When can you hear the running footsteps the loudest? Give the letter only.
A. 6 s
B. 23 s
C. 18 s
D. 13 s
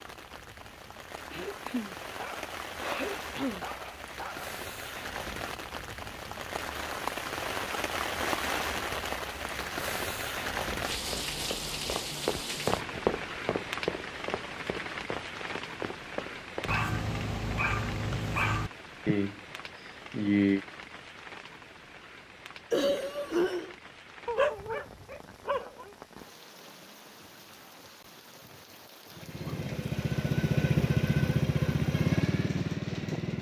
D.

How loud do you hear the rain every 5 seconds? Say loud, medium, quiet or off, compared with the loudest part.
medium, loud, loud, medium, quiet, quiet, quiet.